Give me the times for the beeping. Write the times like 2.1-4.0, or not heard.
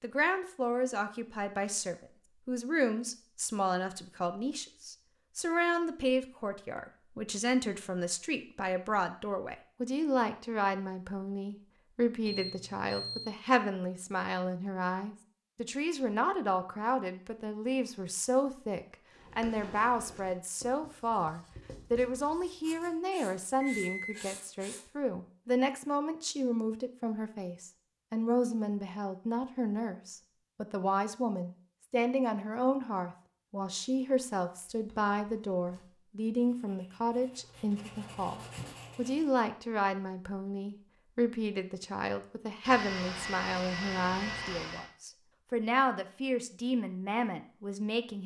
12.2-13.3, 23.6-24.1, 42.6-44.9.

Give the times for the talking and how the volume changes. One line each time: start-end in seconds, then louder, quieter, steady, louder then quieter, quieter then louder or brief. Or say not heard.
0.0-48.2 steady.